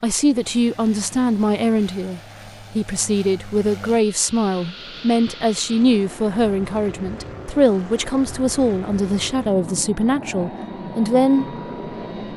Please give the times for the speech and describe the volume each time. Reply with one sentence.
The speech can be heard from 0.0 to 11.6 s, at a steady volume.